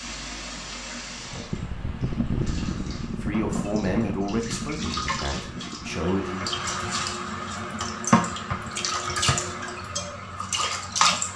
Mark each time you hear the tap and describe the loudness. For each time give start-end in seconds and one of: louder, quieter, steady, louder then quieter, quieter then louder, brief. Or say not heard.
0.0-11.3 louder.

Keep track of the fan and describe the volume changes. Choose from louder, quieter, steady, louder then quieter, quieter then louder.
quieter.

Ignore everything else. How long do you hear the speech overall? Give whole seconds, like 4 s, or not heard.
3 s.